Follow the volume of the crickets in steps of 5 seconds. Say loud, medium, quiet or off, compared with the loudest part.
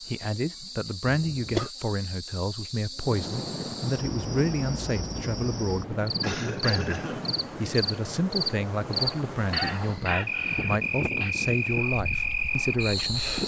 medium, loud, loud.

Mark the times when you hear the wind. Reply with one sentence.
You can hear the wind from 3.0 to 13.4 s.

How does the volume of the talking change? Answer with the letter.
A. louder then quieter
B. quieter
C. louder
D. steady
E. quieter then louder
D.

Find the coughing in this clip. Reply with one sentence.
The coughing can be heard from 1.1 to 1.7 s, from 6.2 to 7.3 s and from 9.5 to 11.3 s.